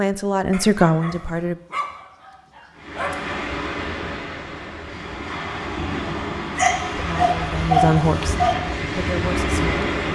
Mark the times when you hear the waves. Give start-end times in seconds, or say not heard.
2.8-10.1.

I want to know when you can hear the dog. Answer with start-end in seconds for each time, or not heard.
0.5-3.4, 6.5-8.6.